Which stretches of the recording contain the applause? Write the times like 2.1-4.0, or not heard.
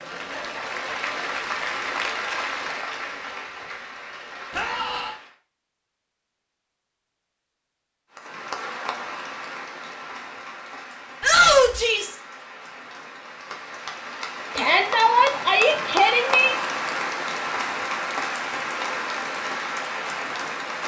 0.0-5.3, 8.1-20.8.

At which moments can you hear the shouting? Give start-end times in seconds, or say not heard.
4.5-5.2, 11.2-12.2, 14.6-16.6.